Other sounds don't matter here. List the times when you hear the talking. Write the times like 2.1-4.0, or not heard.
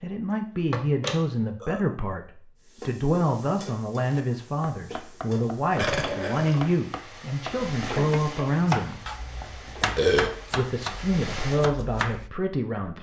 0.0-9.0, 10.6-12.9.